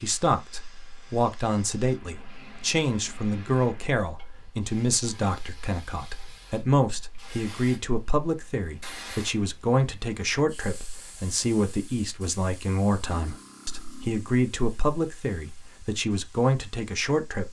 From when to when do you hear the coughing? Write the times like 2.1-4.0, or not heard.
not heard.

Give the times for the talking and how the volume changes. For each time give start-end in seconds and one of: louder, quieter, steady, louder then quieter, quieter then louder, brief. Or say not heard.
0.0-17.4 steady.